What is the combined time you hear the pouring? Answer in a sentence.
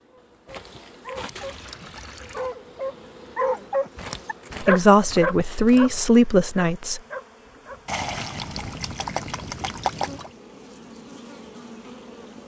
You can hear the pouring for 4 seconds altogether.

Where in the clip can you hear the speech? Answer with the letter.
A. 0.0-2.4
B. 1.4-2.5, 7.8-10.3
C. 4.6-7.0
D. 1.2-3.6
C.